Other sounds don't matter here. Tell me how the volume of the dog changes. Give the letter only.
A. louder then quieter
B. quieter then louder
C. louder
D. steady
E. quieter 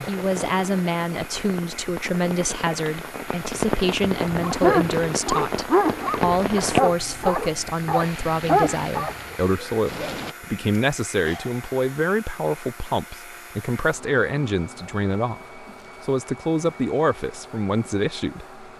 B.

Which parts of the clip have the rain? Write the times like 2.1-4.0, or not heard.
0.0-10.3.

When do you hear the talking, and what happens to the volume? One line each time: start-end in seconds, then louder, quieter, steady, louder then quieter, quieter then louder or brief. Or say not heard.
0.0-18.6 steady.